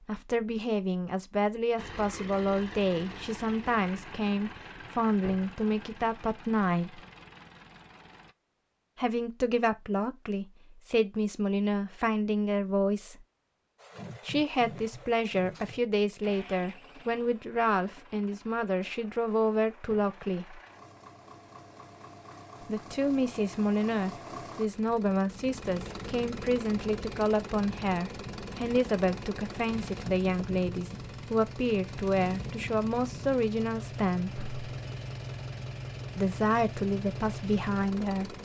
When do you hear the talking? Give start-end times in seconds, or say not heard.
0.1-7.0, 8.9-13.2, 14.2-20.6, 22.6-34.4, 36.1-38.4.